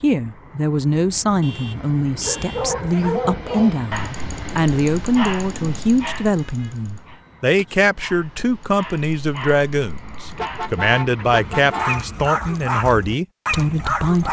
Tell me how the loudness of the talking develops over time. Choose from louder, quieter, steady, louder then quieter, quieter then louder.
steady.